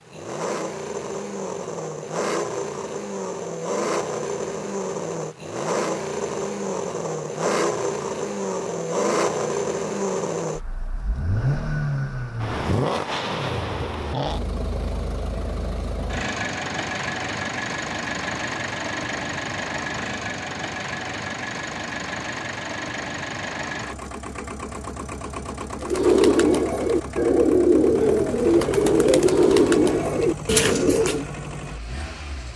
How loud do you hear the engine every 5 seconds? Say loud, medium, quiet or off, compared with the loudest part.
loud, loud, loud, loud, medium, medium, medium.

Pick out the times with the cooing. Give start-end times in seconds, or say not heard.
25.8-31.2.